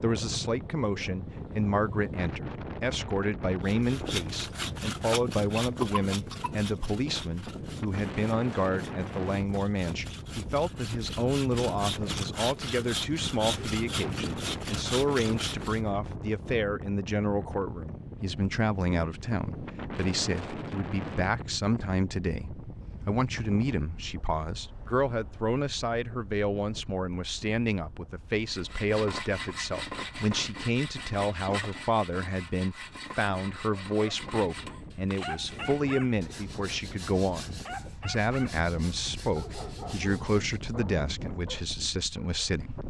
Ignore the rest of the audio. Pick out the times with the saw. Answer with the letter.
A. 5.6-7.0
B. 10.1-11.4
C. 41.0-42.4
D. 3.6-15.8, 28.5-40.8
D.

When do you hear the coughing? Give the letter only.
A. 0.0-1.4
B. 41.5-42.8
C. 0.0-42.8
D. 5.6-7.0
D.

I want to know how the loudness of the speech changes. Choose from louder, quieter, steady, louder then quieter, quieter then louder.
steady.